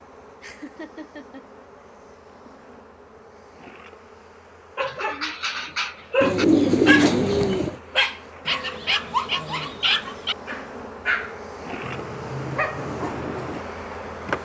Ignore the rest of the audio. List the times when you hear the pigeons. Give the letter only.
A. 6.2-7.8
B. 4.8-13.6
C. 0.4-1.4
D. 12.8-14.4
A.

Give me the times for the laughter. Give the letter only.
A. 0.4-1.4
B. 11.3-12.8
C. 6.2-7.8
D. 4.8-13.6
A.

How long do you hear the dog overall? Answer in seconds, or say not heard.
9 s.